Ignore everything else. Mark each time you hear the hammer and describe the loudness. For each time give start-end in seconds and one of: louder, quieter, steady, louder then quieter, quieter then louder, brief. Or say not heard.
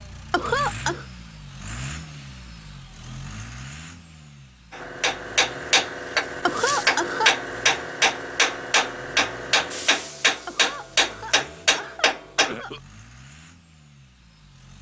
4.7-12.6 steady.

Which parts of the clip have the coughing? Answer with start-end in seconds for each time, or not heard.
0.3-1.1, 6.5-7.3, 10.4-12.8.